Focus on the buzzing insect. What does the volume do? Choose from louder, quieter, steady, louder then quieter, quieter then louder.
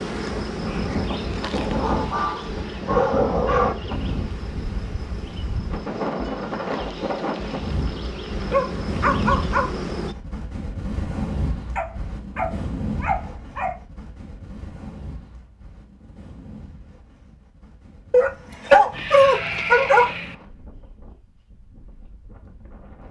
quieter then louder.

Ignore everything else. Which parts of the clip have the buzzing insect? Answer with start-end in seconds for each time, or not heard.
0.0-10.2.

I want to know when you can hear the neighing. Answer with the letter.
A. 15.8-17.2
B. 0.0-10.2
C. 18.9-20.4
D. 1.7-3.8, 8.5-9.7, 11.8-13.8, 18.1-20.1
C.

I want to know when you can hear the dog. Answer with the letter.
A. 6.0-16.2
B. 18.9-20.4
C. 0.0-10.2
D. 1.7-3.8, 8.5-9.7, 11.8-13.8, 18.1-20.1
D.